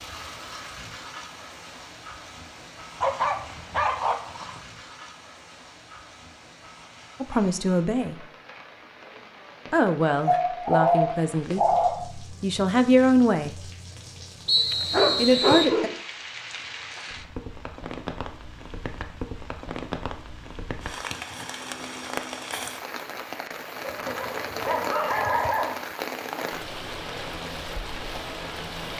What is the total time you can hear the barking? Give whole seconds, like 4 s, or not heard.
6 s.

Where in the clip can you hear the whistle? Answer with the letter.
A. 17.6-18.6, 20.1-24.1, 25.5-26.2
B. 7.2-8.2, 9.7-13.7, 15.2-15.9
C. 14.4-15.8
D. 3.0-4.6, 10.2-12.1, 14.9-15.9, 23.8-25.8
C.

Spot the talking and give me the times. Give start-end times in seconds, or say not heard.
7.2-8.2, 9.7-13.7, 15.2-15.9.